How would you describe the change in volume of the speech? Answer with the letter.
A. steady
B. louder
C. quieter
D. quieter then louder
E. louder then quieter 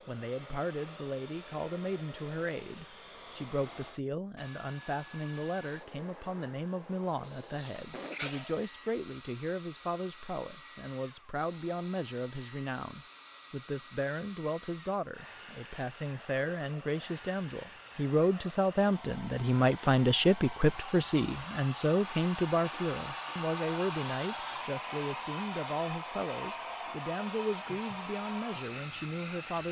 E.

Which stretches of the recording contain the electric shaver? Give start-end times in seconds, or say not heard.
not heard.